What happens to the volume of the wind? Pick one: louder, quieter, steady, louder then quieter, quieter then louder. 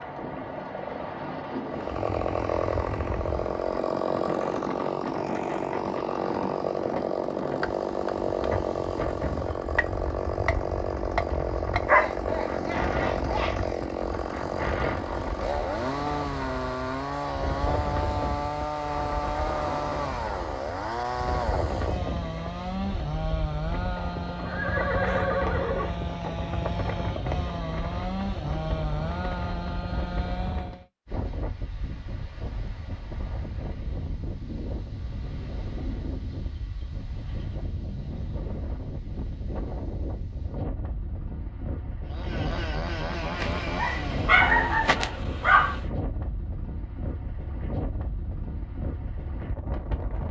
steady.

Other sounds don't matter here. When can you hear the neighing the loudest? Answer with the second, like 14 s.
25 s.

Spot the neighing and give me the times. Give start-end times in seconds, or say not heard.
23.9-26.4.